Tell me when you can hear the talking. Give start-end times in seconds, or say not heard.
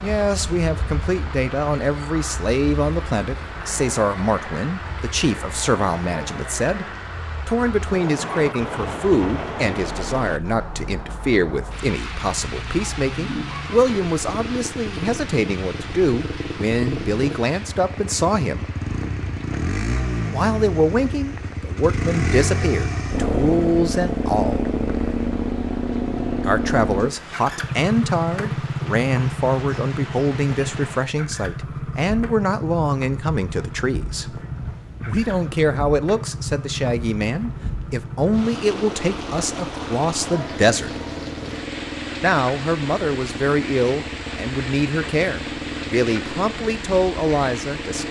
0.0-6.8, 7.5-18.7, 20.3-24.7, 26.4-34.4, 35.0-41.0, 42.2-48.0.